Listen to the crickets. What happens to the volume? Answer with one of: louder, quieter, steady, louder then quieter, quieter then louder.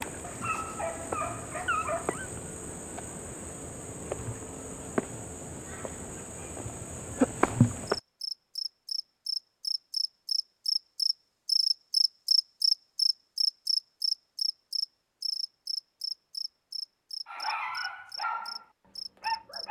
louder then quieter.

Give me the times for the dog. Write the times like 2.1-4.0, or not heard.
0.0-2.3, 17.2-19.6.